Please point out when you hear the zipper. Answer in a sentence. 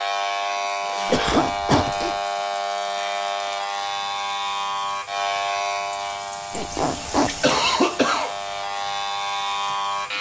You can hear the zipper from 1.1 to 2.1 s and from 6.5 to 7.5 s.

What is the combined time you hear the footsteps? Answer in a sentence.
The footsteps can't be heard in this clip.